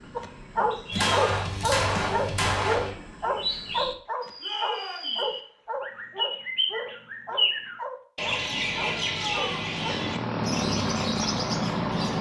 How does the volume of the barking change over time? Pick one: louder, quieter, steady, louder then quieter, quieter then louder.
quieter.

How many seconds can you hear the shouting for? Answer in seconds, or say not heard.
2 s.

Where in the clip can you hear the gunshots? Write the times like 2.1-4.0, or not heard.
0.9-3.0.